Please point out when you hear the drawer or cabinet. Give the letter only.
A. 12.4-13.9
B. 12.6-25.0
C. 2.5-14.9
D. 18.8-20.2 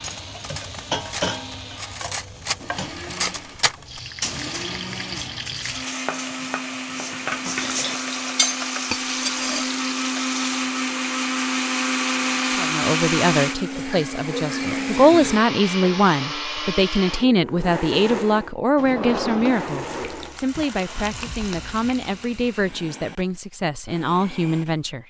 D.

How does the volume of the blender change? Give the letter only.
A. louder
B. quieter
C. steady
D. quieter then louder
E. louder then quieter
E.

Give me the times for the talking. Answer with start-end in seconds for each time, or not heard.
12.6-25.0.